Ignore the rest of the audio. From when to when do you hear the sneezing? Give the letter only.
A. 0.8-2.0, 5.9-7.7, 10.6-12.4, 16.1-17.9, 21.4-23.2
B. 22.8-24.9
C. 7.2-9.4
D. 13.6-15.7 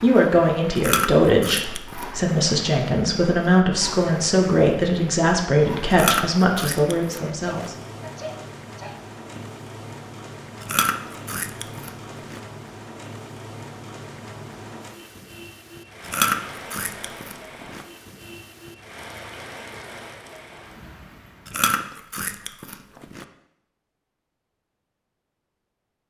C.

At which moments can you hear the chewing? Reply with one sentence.
The chewing can be heard from 0.8 to 2.0 s, from 5.9 to 7.7 s, from 10.6 to 12.4 s, from 16.1 to 17.9 s and from 21.4 to 23.2 s.